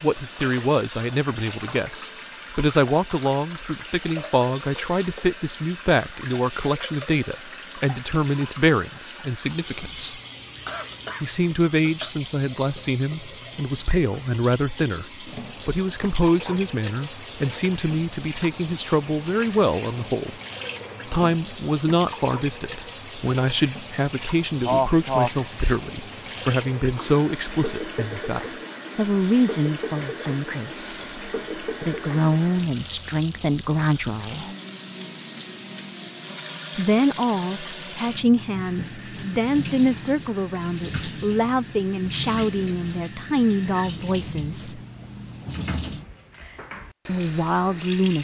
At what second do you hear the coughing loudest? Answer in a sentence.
The volume of the coughing peaks at 25 seconds.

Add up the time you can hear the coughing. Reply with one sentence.
The coughing can be heard for 2 seconds in total.